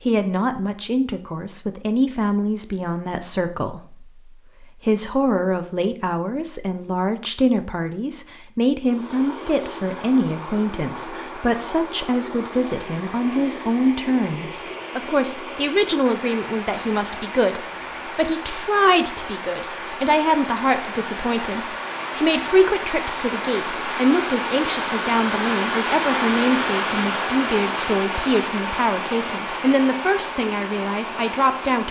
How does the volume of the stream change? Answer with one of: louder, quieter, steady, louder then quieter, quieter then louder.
louder.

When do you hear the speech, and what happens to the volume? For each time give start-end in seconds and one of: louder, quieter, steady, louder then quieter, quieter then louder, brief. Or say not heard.
0.1-31.8 steady.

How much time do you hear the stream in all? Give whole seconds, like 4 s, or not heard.
23 s.